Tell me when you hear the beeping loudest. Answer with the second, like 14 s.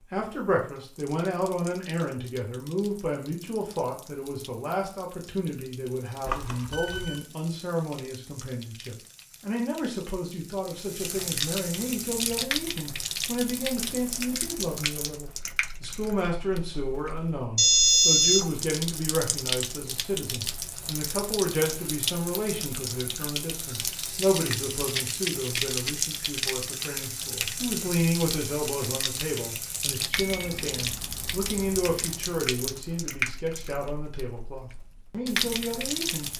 18 s.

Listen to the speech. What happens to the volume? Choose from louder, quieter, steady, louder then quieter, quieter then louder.
steady.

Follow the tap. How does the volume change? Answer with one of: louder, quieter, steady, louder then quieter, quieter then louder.
louder.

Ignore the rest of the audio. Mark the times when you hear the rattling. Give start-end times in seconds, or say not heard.
24.9-26.1.